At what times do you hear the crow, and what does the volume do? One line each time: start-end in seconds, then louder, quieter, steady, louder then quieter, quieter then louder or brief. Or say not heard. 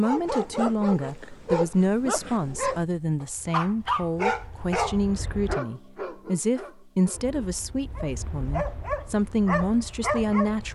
not heard.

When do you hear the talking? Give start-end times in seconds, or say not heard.
0.0-10.7.